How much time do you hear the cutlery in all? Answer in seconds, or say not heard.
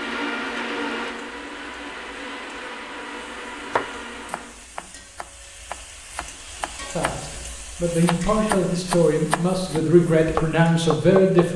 not heard.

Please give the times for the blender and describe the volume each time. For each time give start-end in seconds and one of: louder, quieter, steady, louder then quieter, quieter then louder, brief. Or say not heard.
0.0-4.7 quieter.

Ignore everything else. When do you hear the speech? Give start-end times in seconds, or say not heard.
6.8-11.5.